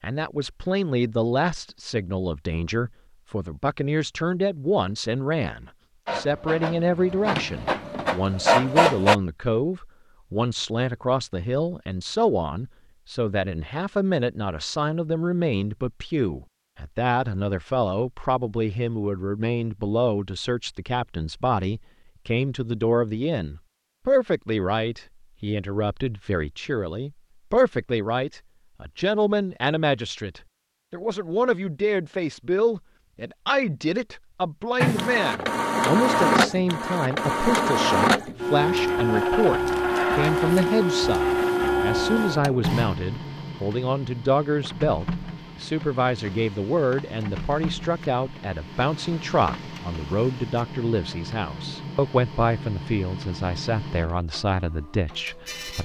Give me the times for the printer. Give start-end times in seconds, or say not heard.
6.0-9.2, 34.8-55.7.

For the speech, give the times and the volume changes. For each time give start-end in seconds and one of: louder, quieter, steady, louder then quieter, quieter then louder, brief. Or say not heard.
0.0-55.7 steady.